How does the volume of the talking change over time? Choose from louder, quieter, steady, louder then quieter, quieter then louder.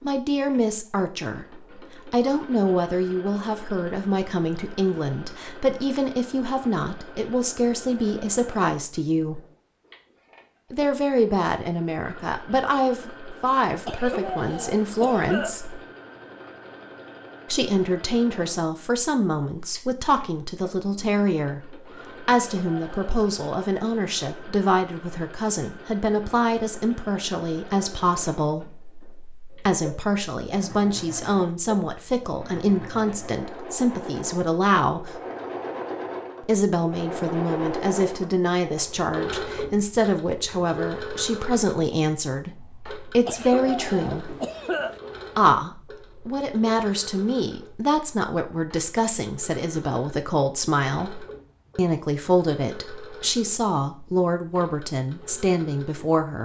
steady.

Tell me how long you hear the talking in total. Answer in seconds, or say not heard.
51 s.